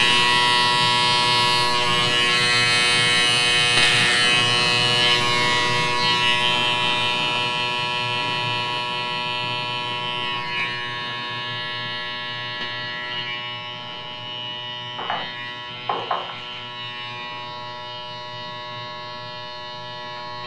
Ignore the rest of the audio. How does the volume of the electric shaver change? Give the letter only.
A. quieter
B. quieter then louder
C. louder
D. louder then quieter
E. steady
A.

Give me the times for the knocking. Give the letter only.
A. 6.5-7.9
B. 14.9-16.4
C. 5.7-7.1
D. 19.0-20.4
B.